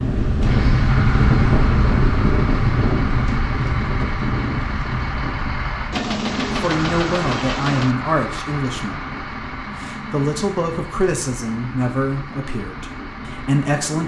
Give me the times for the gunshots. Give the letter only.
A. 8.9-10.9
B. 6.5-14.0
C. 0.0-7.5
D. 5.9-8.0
D.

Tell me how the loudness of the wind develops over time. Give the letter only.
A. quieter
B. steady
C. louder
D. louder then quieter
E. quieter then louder
A.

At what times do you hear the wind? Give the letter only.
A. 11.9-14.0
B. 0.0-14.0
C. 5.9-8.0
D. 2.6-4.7
B.